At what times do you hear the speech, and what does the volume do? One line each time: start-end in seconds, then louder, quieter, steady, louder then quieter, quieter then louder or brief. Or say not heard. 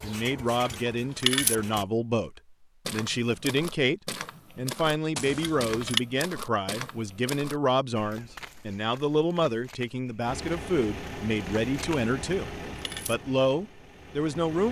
0.0-14.6 steady.